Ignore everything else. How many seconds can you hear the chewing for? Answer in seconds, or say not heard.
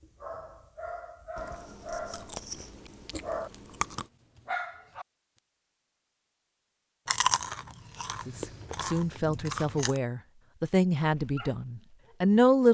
6 s.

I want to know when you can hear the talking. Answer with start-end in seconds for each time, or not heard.
8.2-12.6.